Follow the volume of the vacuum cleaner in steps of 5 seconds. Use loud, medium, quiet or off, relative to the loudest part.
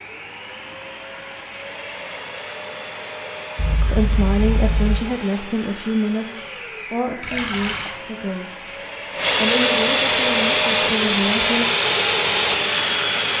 quiet, medium, loud.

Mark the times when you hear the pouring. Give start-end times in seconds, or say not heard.
3.5-5.0, 7.2-8.0.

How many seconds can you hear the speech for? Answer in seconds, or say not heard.
7 s.